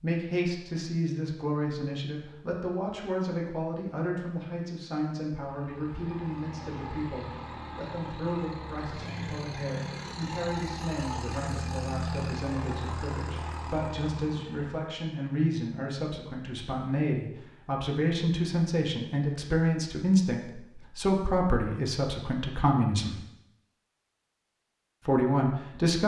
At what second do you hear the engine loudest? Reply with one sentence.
The loudest moment of the engine is at 12 seconds.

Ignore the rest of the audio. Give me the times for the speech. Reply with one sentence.
You can hear the speech from 0.0 to 23.2 s and from 25.1 to 26.0 s.